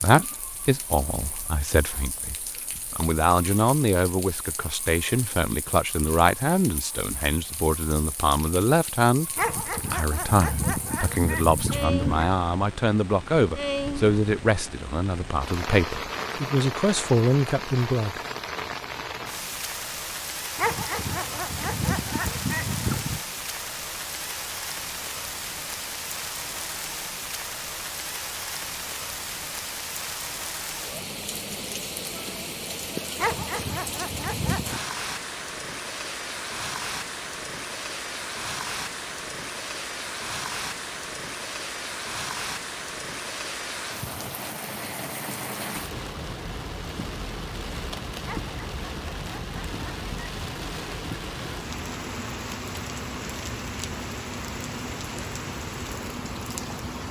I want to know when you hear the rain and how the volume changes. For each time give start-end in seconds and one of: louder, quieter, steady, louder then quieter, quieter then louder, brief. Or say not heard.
0.0-57.0 louder.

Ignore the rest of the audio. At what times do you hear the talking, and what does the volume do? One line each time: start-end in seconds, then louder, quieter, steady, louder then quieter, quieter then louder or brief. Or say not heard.
0.0-18.1 steady.